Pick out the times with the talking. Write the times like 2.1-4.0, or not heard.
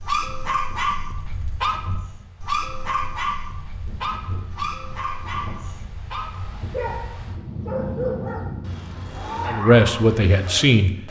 9.4-10.9.